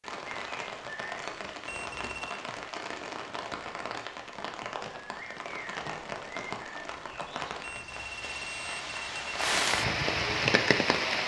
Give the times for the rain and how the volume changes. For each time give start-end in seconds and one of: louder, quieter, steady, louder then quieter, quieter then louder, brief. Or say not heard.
0.0-11.2 louder.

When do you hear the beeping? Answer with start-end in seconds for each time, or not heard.
1.6-2.4, 7.6-9.4.